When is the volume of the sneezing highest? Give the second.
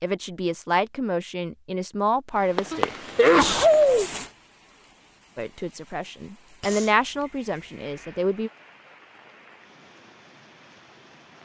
4 s.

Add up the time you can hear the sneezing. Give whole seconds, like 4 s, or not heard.
3 s.